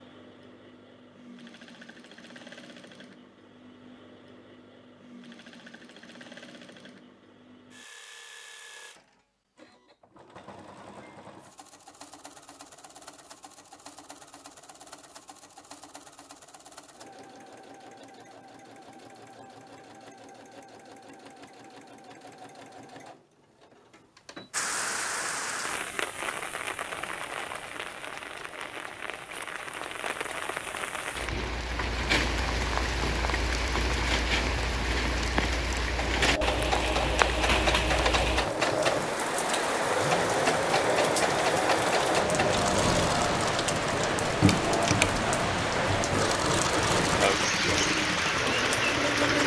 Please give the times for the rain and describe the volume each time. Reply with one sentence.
The rain can be heard from 24.5 to 49.4 s, getting louder.